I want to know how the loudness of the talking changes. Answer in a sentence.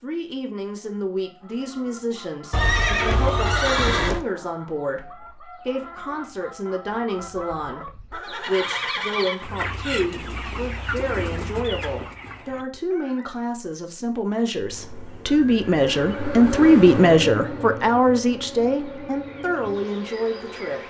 The loudness of the talking goes up.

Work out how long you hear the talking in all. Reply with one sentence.
You can hear the talking for 21 seconds altogether.